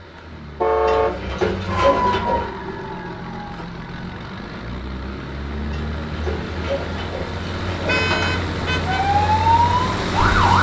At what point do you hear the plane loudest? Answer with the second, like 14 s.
10 s.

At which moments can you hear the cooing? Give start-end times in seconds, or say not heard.
0.8-2.5, 5.7-8.4.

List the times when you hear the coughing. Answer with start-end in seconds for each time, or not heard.
not heard.